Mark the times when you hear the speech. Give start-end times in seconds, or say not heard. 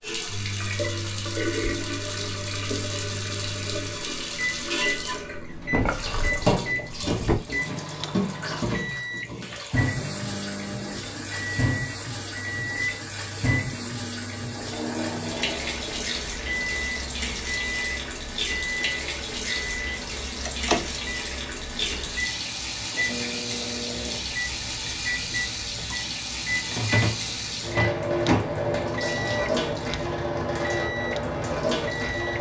not heard.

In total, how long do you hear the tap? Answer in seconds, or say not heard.
32 s.